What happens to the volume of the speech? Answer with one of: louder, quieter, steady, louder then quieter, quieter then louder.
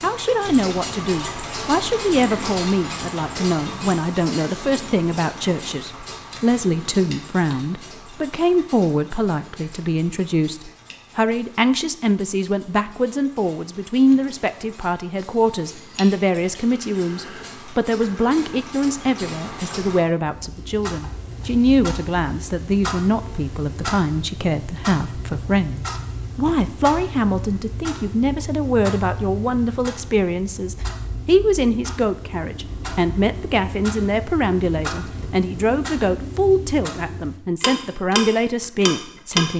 steady.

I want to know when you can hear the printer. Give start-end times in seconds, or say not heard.
not heard.